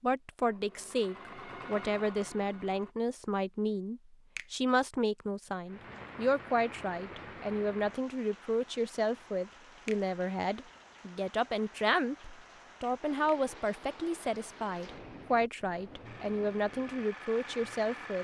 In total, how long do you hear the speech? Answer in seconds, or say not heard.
18 s.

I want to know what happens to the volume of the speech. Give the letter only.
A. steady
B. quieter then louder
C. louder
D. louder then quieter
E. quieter
A.